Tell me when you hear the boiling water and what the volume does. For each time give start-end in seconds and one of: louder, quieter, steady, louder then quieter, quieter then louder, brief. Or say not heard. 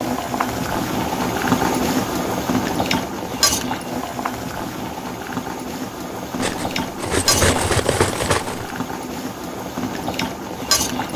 0.0-11.1 quieter.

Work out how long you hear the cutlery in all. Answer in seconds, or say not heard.
2 s.